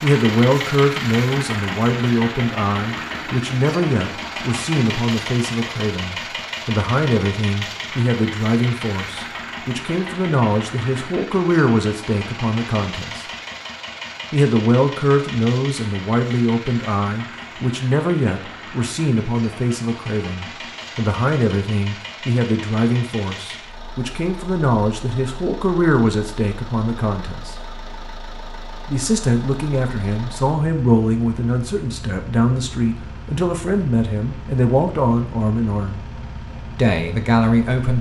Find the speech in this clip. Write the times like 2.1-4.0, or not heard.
0.0-13.2, 14.3-27.6, 28.9-36.0, 36.8-37.9.